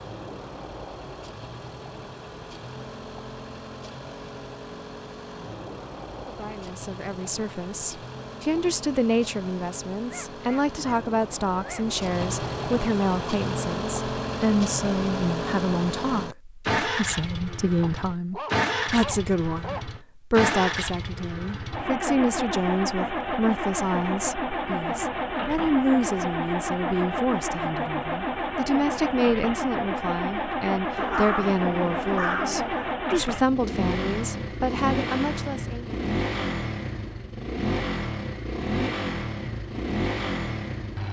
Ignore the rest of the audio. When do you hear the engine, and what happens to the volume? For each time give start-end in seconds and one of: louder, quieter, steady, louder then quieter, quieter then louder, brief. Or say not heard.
0.0-41.0 louder.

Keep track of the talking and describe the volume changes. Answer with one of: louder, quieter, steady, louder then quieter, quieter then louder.
steady.